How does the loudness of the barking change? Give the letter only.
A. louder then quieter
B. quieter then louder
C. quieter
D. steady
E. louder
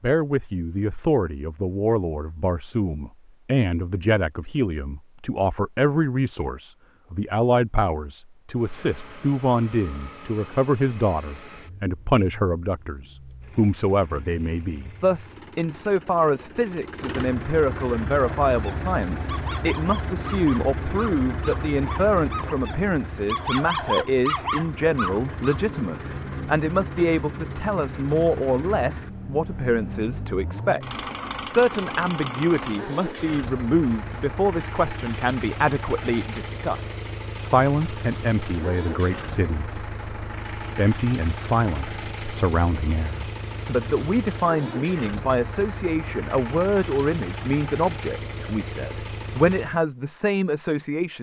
E.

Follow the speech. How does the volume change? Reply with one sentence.
The loudness of the speech stays about the same.